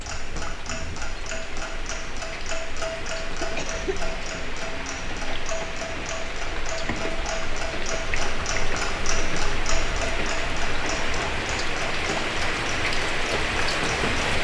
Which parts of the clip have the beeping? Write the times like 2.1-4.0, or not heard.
not heard.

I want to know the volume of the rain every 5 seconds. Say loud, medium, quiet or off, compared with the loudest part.
medium, medium, loud.